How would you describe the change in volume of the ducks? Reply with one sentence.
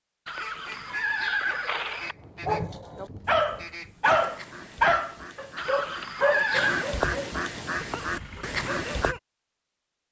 The volume of the ducks goes up.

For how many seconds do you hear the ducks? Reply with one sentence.
The ducks can be heard for 9 seconds in total.